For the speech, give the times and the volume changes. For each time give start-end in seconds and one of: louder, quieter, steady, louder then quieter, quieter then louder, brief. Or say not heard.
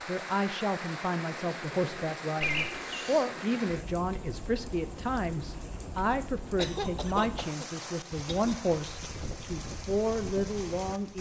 0.1-11.1 steady.